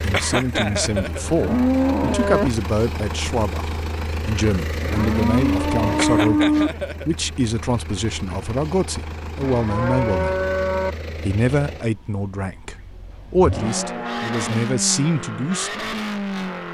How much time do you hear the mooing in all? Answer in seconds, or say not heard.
7 s.